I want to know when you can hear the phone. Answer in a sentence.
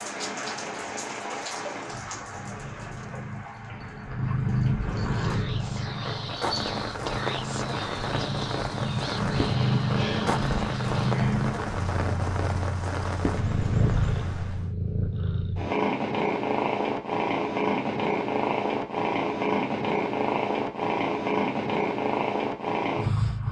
The phone can't be heard in this clip.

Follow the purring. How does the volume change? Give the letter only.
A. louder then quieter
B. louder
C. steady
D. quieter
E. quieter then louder
B.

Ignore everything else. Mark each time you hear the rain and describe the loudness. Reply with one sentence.
The rain can be heard from 0.0 to 14.7 s, getting quieter then louder.